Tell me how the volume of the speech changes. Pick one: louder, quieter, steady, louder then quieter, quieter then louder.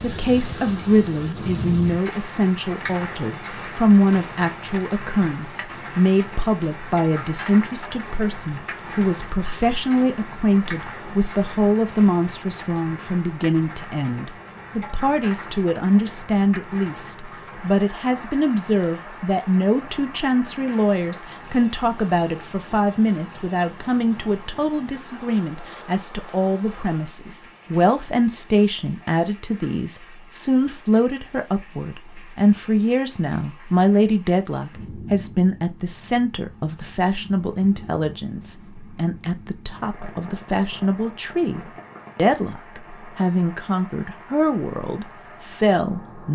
steady.